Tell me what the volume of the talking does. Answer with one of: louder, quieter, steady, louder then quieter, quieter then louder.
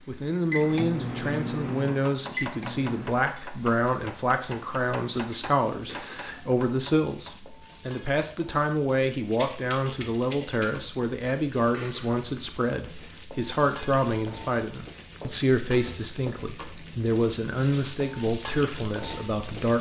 steady.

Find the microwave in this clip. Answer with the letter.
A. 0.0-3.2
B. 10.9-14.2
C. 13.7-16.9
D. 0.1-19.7
A.